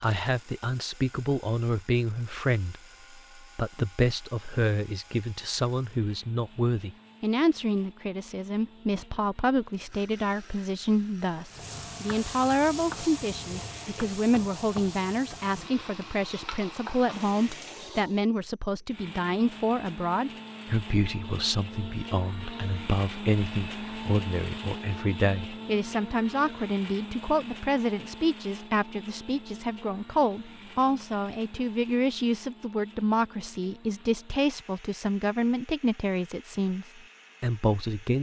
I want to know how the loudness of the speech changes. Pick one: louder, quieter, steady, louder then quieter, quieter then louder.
steady.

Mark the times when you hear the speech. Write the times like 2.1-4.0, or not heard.
0.0-38.1.